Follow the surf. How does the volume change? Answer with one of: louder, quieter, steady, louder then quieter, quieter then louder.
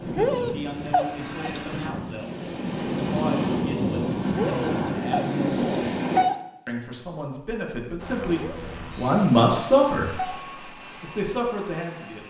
louder.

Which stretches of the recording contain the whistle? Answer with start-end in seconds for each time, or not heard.
not heard.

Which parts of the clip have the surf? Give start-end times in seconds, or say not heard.
0.0-6.2.